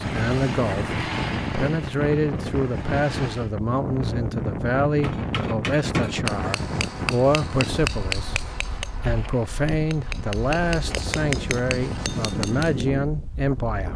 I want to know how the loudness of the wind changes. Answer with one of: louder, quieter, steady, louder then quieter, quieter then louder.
quieter then louder.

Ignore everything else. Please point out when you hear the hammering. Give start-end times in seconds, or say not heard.
5.0-12.8.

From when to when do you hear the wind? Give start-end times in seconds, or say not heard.
0.0-13.9.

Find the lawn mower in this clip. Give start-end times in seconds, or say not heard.
0.0-3.5.